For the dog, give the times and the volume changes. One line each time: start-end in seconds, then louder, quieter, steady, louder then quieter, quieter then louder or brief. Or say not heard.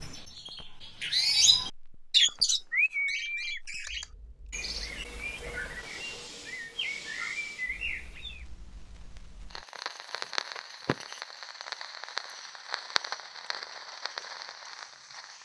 not heard.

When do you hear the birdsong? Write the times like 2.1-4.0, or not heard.
0.0-8.4.